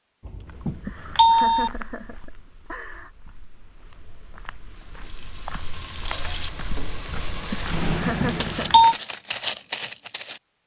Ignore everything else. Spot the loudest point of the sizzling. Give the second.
8 s.